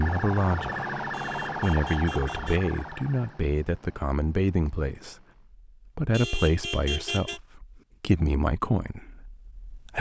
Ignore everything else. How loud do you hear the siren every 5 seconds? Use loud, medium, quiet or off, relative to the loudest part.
loud, off.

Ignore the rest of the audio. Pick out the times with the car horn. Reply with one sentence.
The car horn can be heard from 1.1 to 2.6 s and from 6.1 to 7.4 s.